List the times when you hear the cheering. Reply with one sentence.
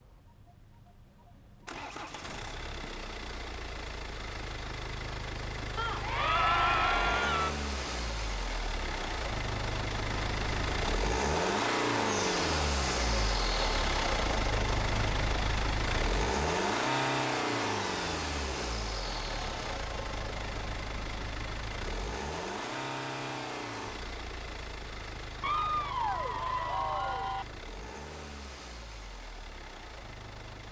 The cheering can be heard from 5.8 to 7.5 s and from 25.4 to 27.4 s.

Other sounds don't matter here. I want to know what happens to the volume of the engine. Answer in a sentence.
The volume of the engine goes up, then down.